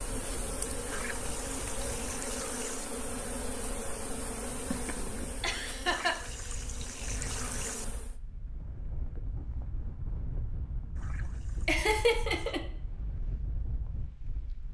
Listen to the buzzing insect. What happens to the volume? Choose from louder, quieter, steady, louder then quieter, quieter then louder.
quieter.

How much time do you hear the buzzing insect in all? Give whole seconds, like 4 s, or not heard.
8 s.